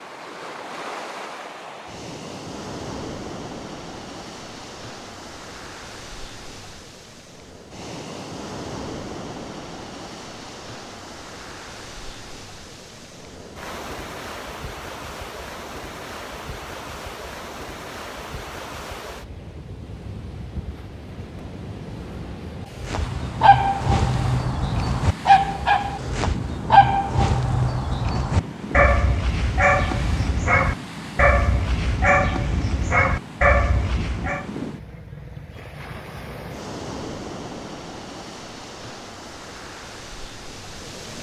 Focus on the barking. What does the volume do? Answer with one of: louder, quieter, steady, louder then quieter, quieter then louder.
steady.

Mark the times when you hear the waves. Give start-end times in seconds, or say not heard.
0.0-41.1.